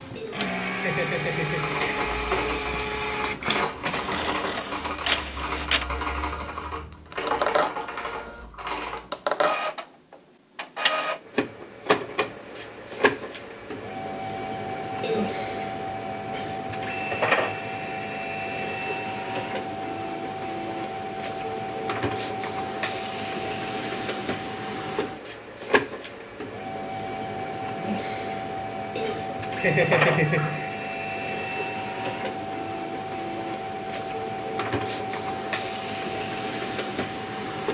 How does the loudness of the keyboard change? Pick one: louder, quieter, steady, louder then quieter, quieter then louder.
steady.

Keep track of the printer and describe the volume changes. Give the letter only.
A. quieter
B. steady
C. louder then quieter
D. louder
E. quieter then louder
B.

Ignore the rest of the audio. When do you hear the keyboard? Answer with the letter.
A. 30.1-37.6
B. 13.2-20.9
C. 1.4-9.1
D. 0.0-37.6
C.